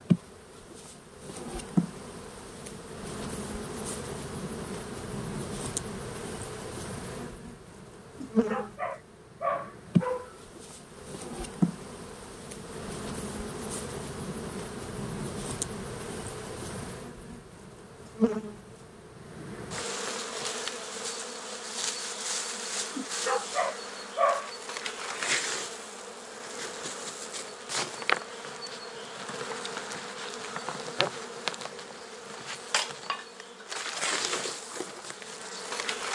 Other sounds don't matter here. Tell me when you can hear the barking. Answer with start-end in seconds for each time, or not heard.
8.2-10.3, 22.9-24.5.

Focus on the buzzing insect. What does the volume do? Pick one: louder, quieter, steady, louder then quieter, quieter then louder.
steady.